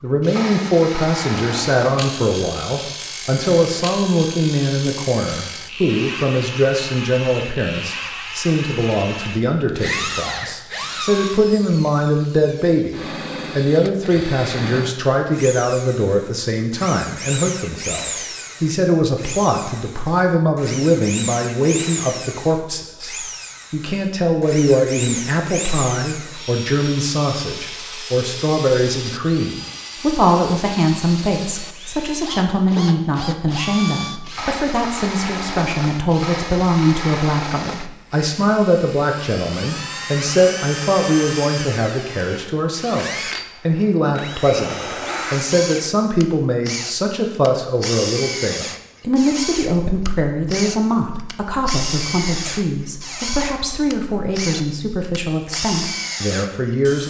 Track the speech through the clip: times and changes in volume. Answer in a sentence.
You can hear the speech from 0.0 to 57.0 s, at a steady volume.